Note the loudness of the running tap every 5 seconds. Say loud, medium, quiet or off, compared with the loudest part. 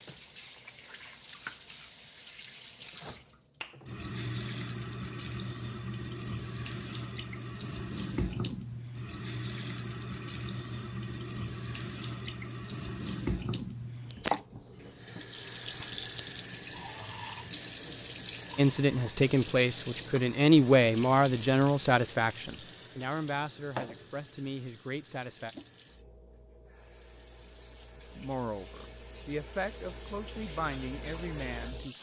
medium, loud, loud, loud, loud, quiet, medium.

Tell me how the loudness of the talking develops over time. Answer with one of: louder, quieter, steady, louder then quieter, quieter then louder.
quieter.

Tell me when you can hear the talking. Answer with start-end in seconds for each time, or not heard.
18.6-25.5, 28.1-31.9.